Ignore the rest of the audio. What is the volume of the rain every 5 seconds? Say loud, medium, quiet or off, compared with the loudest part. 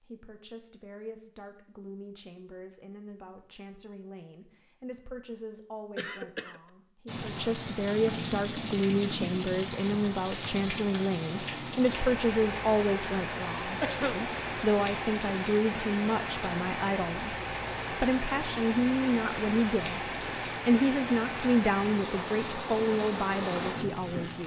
off, loud, loud, loud, loud.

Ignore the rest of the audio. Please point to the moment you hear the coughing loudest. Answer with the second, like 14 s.
14 s.